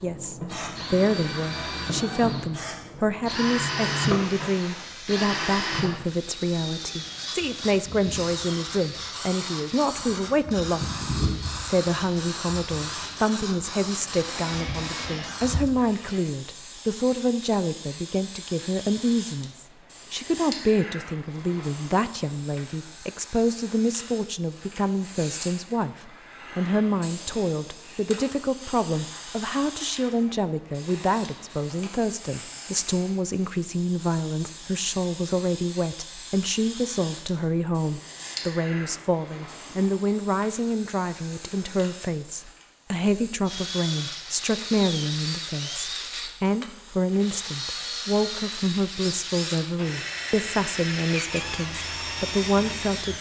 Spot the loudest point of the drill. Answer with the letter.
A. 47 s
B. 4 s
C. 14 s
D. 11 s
B.